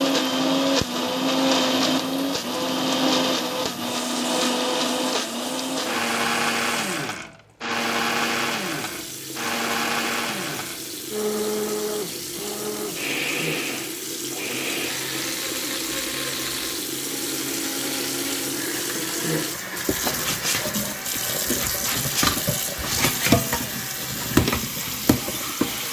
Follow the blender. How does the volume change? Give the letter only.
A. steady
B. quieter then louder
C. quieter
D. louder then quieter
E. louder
C.